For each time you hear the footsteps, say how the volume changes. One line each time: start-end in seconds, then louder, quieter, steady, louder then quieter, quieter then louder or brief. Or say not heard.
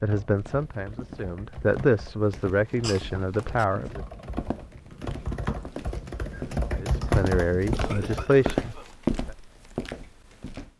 0.3-10.7 louder.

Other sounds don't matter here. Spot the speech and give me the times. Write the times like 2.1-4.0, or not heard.
0.0-4.0, 6.7-8.8.